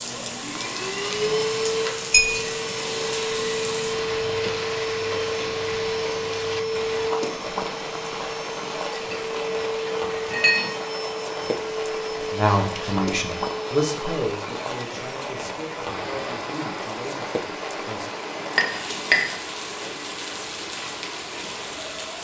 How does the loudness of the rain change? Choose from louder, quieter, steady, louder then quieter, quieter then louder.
steady.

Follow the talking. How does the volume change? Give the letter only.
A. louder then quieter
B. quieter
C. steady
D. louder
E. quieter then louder
B.